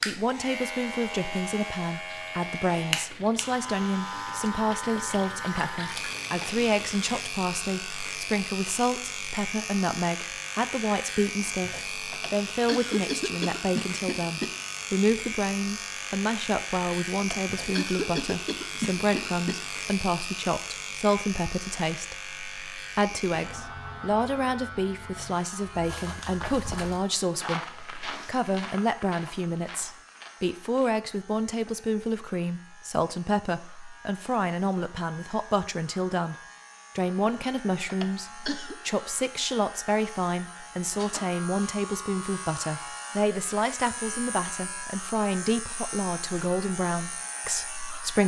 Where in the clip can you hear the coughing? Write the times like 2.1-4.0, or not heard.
12.1-14.5, 17.1-19.6, 37.9-38.8.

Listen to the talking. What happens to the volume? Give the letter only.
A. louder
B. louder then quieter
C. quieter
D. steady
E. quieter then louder
D.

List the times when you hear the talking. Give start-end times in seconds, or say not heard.
0.1-36.4, 37.0-48.2.